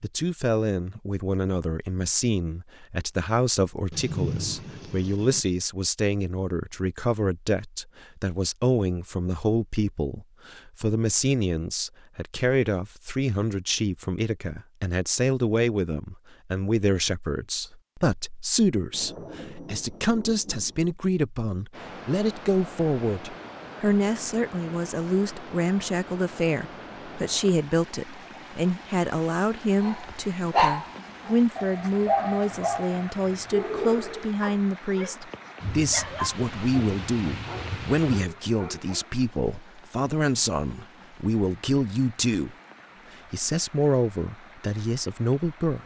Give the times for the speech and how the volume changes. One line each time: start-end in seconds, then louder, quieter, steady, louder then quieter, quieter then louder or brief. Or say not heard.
0.0-42.5 steady
43.3-45.8 brief.